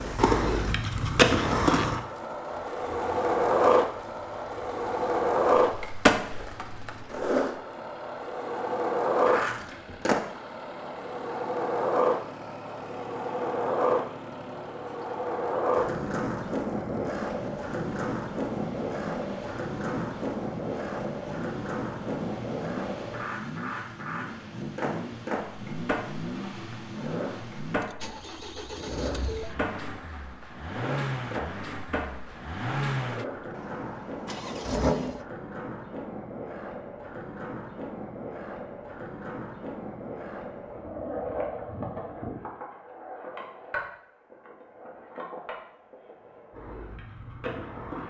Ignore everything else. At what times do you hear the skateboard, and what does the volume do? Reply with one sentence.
The skateboard can be heard from 0.0 to 48.0 s, getting quieter.